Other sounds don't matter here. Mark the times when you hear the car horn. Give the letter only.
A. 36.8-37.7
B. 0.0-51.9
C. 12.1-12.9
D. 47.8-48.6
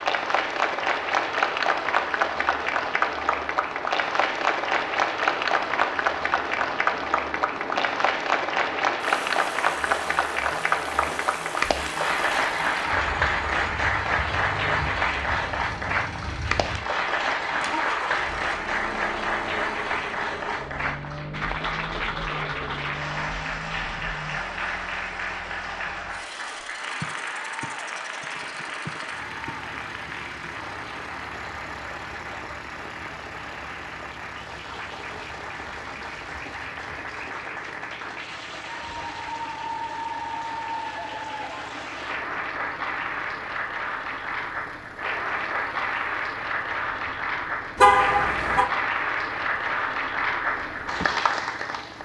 D.